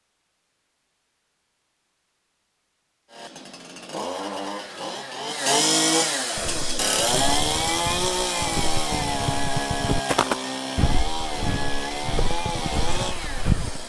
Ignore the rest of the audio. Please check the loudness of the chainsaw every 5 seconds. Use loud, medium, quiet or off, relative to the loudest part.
medium, loud, medium.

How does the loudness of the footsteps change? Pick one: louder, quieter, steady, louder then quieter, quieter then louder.
louder then quieter.